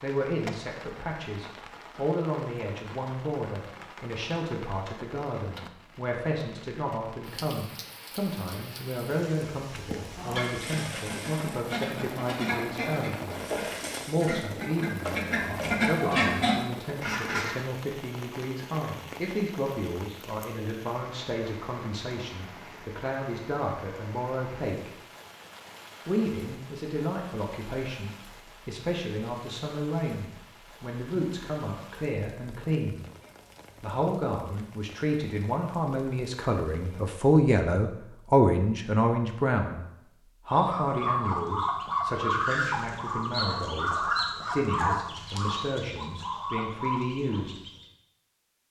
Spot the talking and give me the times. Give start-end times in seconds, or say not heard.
0.0-24.9, 26.1-33.0, 33.8-39.9, 40.5-47.5.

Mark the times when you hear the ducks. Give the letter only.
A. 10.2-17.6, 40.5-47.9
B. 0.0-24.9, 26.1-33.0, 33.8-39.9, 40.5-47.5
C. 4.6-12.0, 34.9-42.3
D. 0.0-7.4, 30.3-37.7
A.